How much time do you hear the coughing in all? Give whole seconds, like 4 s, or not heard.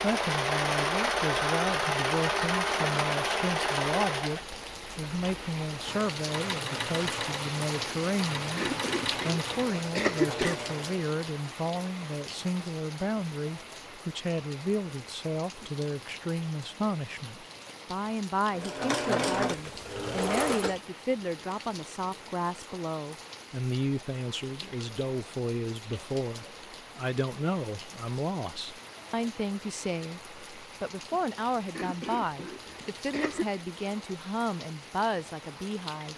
4 s.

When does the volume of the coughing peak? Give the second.
10 s.